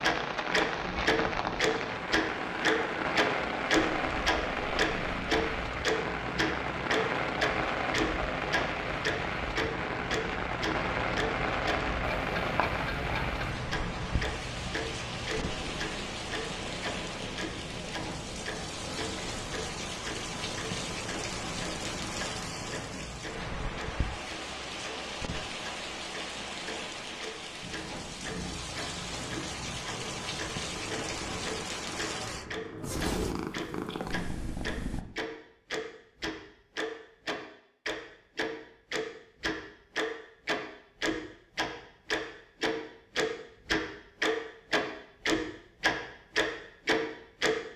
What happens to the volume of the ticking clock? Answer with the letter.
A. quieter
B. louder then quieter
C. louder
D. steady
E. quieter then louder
E.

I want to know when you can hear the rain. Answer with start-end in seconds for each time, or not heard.
0.0-32.5.